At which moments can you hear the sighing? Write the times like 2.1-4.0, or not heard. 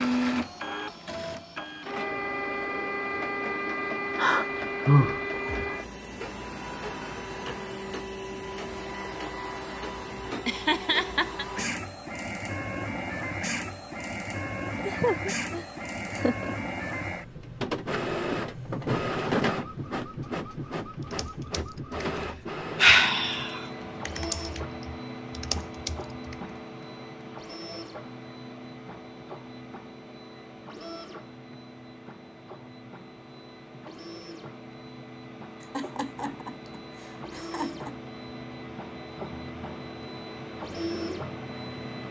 4.2-5.7.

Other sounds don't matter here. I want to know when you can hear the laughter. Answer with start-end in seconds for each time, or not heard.
10.3-11.4, 14.8-16.6, 35.6-38.0.